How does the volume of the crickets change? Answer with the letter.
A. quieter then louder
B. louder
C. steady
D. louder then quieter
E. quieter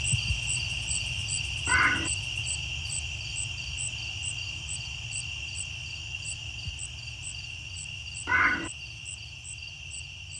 E.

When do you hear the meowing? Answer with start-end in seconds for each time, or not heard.
1.6-2.1, 8.2-8.7.